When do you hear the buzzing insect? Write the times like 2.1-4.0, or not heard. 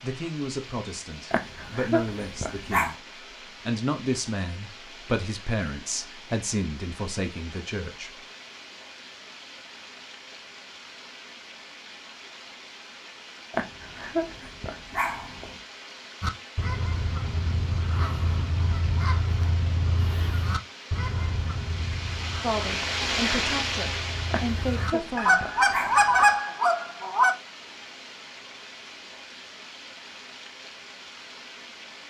not heard.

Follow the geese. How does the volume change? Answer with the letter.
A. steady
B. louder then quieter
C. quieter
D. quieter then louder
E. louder
D.